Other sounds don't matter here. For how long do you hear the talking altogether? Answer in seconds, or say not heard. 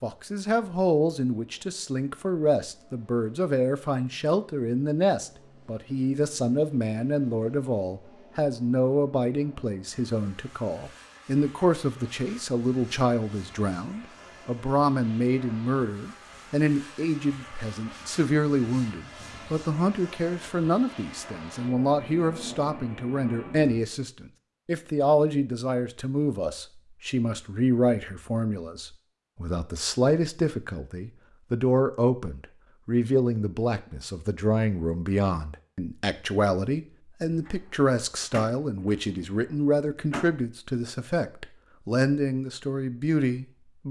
44 s.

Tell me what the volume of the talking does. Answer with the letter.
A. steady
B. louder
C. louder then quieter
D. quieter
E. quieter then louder
A.